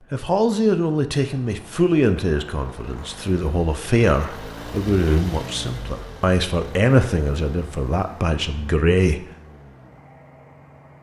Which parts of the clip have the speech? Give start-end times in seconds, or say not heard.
0.1-9.2.